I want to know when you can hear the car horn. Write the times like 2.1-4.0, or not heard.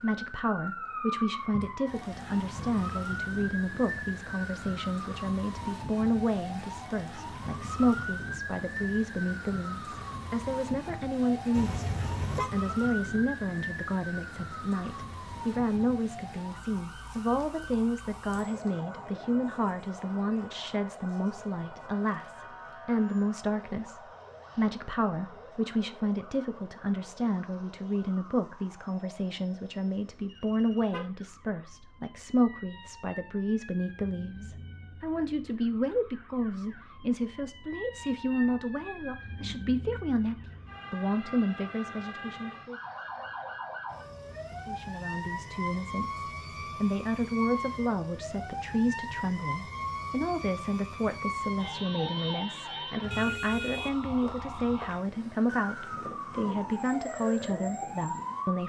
11.5-12.5, 30.1-31.1, 53.1-54.9.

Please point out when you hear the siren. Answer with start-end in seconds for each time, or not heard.
0.0-58.6.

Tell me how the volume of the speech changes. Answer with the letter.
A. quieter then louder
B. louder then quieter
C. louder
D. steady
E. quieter
D.